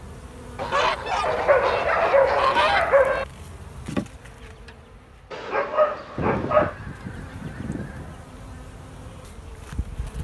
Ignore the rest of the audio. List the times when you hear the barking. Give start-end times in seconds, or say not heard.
1.2-3.2, 5.3-6.8.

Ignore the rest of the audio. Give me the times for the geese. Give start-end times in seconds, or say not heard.
0.6-2.9, 6.2-8.2.